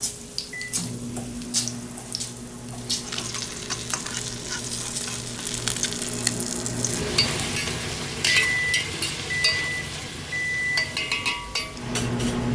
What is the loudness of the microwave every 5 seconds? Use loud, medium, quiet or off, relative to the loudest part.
medium, loud, loud.